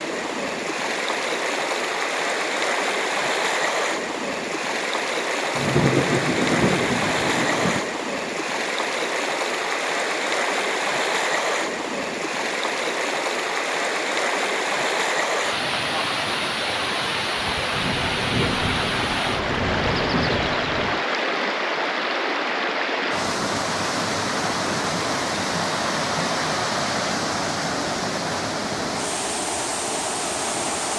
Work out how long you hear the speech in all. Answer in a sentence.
You can't hear the speech here.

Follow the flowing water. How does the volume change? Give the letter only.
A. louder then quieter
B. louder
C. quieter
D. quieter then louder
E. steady
E.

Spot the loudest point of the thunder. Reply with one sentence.
The loudest moment of the thunder is at 6 seconds.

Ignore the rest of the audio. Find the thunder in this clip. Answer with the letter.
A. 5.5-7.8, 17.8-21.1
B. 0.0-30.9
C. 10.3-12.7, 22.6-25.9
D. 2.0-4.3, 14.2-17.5
A.